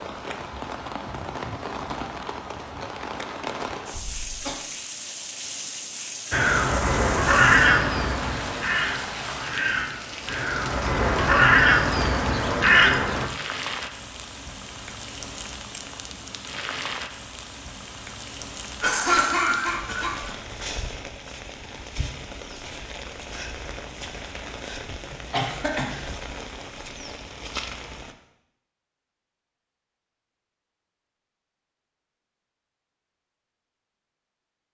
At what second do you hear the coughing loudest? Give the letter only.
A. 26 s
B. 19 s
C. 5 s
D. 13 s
B.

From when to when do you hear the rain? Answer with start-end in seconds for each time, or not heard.
0.0-28.1.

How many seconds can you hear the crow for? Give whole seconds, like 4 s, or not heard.
7 s.